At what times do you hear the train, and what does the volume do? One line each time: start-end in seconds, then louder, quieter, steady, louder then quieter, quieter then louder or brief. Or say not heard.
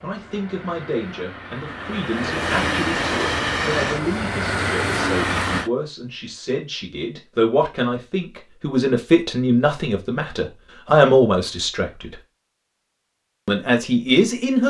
0.0-5.7 louder.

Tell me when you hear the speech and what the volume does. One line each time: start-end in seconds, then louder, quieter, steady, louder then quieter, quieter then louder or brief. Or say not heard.
0.0-12.2 louder
13.4-14.6 brief.